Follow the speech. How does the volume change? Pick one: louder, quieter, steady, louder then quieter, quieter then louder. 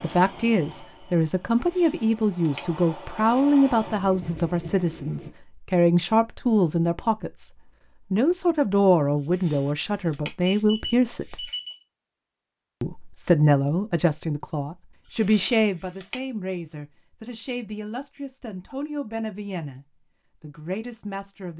quieter.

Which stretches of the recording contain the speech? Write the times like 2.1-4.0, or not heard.
0.0-7.5, 8.1-11.5, 12.8-21.5.